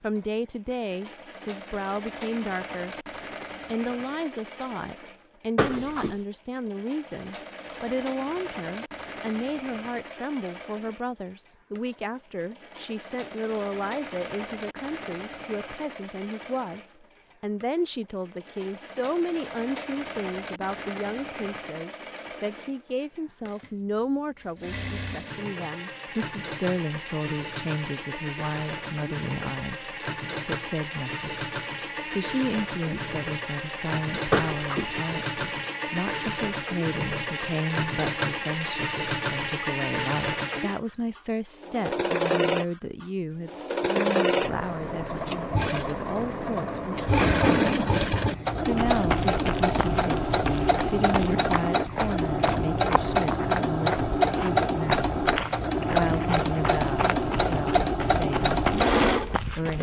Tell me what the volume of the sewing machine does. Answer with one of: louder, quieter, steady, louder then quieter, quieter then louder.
louder.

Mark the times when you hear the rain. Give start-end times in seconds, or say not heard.
not heard.